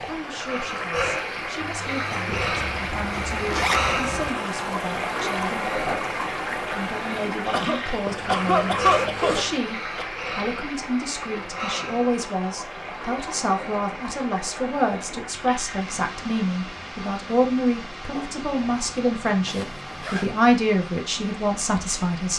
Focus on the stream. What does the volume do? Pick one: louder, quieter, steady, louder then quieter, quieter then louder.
quieter.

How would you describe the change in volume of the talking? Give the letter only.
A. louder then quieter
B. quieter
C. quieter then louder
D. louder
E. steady
D.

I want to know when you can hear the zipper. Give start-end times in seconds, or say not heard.
2.5-4.3, 8.1-9.6, 19.4-20.3.